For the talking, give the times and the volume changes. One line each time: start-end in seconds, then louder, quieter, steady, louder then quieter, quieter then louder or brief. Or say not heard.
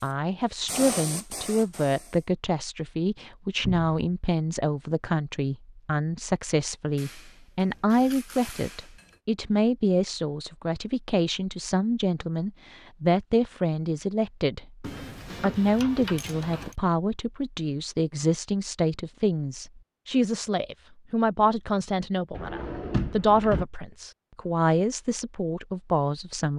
0.0-26.5 steady.